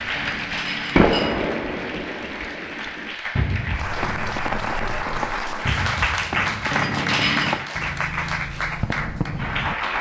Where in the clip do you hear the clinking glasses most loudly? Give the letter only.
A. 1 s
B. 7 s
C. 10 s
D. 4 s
B.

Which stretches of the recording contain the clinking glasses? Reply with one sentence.
The clinking glasses can be heard from 0.1 to 1.9 s and from 6.7 to 7.6 s.